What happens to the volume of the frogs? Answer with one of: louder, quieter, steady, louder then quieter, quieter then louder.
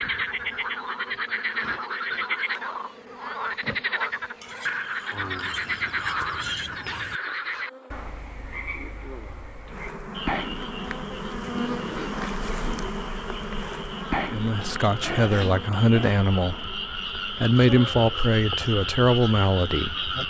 quieter then louder.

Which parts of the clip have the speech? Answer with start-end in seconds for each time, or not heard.
14.3-20.1.